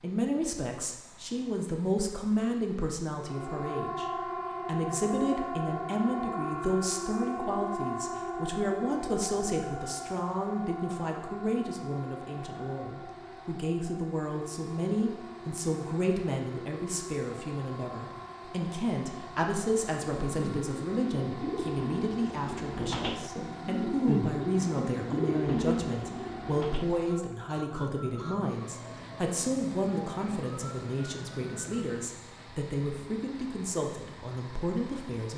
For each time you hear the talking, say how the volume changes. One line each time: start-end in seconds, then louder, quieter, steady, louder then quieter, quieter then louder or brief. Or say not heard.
0.0-35.3 steady.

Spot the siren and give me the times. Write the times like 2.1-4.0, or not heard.
3.1-32.0.